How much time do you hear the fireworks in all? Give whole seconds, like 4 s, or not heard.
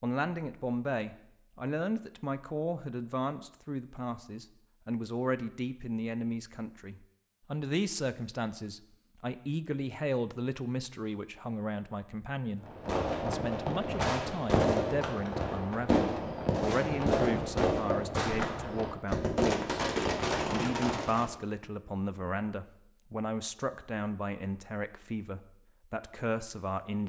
9 s.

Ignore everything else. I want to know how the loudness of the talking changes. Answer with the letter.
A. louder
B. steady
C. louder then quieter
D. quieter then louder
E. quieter
B.